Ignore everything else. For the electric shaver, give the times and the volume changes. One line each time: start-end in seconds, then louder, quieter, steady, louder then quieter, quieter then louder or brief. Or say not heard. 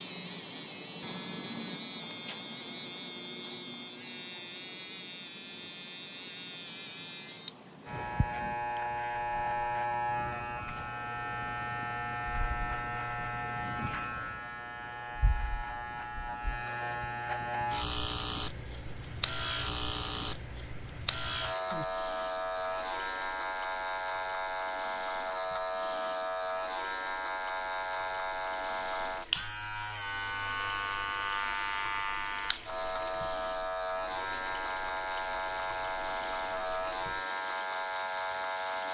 0.0-38.8 steady.